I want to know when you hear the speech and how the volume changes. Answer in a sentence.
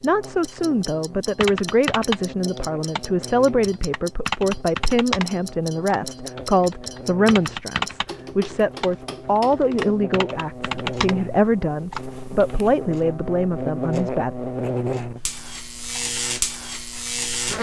The speech can be heard from 0.0 to 14.3 s, at a steady volume.